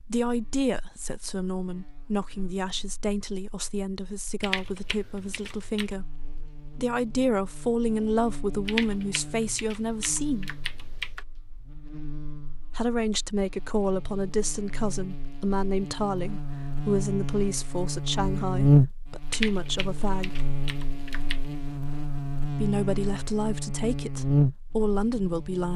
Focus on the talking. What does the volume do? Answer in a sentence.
The volume of the talking stays about the same.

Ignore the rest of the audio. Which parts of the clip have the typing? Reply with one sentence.
The typing can be heard from 4.4 to 6.0 s, from 8.7 to 11.2 s and from 19.3 to 21.4 s.